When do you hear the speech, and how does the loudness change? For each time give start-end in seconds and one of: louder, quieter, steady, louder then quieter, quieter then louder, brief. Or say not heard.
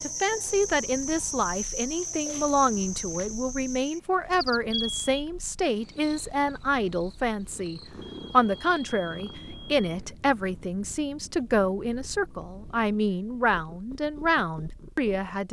0.0-15.4 steady.